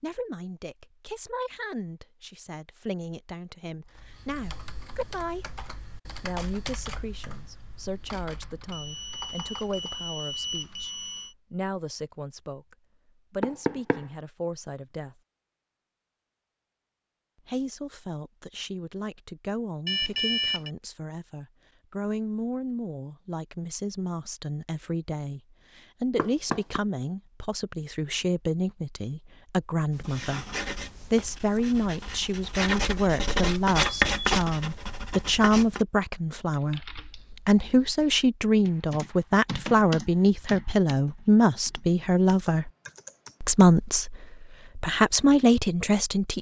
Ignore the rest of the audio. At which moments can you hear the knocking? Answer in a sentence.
You can hear the knocking from 13.4 to 14.1 s and from 26.1 to 26.8 s.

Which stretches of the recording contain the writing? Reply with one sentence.
You can hear the writing from 29.9 to 35.9 s.